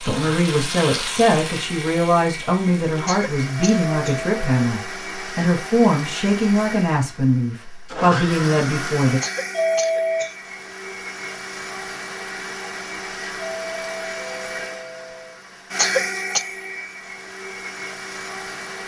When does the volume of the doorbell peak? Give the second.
10 s.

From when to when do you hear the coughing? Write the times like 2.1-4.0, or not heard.
3.0-4.2, 9.2-10.3, 15.8-16.4.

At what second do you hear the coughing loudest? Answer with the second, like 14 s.
16 s.